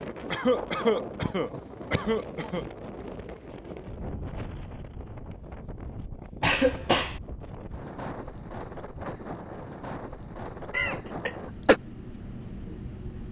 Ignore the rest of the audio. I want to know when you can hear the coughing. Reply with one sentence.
The coughing can be heard from 0.3 to 2.6 s, from 6.4 to 7.2 s and from 10.7 to 11.8 s.